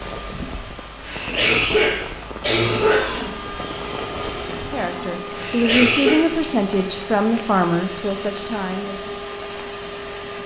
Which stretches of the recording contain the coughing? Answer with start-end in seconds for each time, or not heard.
1.0-3.5, 5.3-6.2.